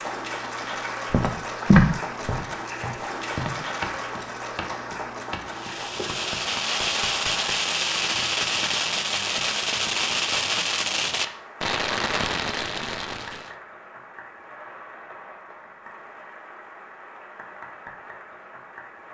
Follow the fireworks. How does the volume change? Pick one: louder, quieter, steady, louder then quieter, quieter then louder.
steady.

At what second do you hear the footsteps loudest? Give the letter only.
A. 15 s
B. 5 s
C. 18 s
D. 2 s
D.